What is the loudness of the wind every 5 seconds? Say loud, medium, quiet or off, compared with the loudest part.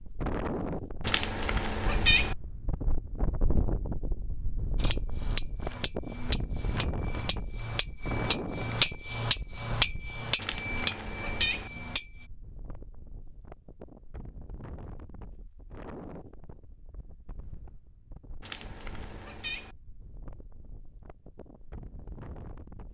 loud, loud, quiet, quiet, quiet.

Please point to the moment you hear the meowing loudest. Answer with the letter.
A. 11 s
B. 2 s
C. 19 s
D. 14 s
B.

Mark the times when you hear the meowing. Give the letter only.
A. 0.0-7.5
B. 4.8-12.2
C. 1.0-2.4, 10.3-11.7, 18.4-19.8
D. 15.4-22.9
C.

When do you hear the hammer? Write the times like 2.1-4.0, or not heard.
4.8-12.2.